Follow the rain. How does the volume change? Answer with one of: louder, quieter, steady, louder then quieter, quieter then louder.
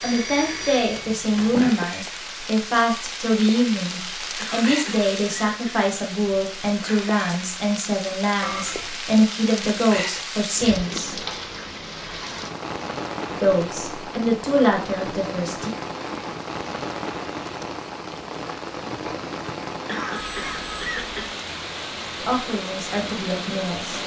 steady.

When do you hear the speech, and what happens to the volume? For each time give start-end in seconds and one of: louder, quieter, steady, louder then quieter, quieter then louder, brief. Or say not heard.
0.0-11.2 steady
13.3-15.7 brief
22.2-24.0 brief.